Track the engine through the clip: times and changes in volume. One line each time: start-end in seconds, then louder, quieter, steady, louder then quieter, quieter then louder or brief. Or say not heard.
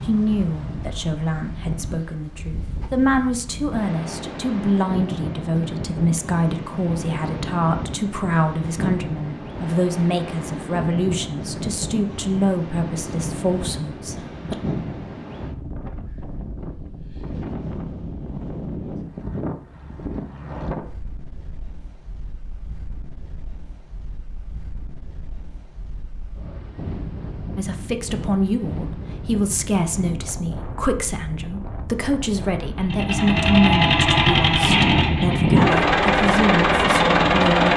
32.8-37.7 steady.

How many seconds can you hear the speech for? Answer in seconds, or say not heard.
25 s.